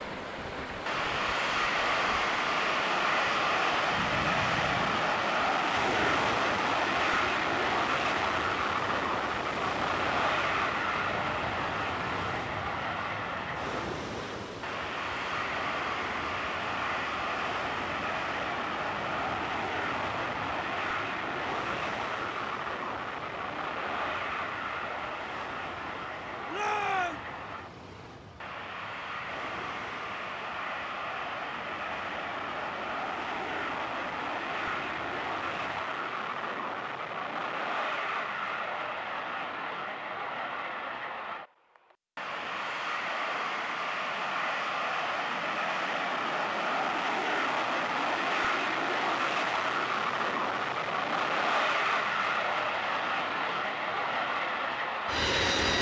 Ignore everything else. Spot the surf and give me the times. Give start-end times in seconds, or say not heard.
0.0-35.9.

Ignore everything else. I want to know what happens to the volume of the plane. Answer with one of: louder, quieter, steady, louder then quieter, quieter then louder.
quieter then louder.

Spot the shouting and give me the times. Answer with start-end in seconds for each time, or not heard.
26.5-27.2.